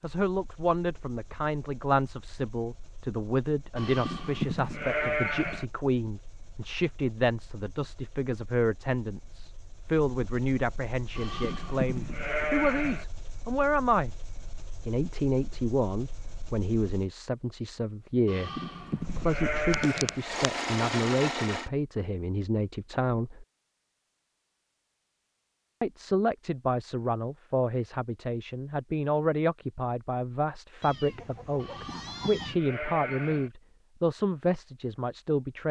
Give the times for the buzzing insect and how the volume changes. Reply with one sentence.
The buzzing insect can't be heard in this clip.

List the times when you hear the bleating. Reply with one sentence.
The bleating can be heard from 3.8 to 5.7 s, from 11.2 to 13.1 s, from 18.2 to 20.2 s and from 31.6 to 33.5 s.